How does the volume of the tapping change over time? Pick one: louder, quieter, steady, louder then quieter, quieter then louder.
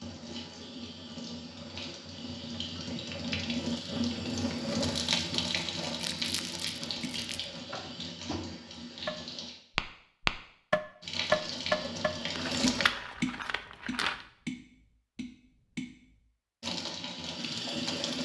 louder then quieter.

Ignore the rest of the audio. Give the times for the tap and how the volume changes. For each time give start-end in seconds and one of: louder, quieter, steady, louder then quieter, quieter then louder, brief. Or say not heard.
0.0-9.6 louder then quieter
11.0-12.9 brief
16.6-18.2 brief.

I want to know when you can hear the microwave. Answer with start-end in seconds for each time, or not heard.
not heard.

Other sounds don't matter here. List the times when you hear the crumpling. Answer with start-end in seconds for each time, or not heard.
6.0-7.5, 12.3-14.2.